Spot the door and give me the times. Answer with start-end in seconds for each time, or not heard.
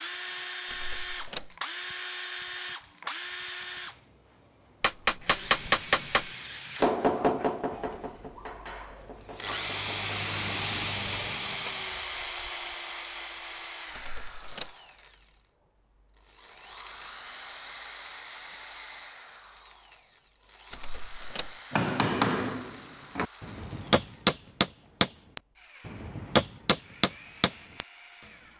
0.7-1.6, 13.9-14.8, 20.7-21.6.